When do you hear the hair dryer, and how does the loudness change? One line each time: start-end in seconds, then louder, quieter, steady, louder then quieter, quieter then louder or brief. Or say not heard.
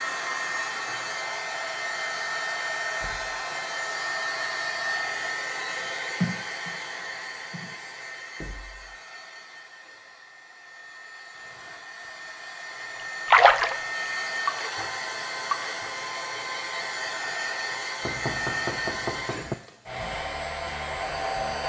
0.0-21.6 quieter then louder.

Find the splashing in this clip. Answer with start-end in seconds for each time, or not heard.
13.3-13.8, 14.4-15.9.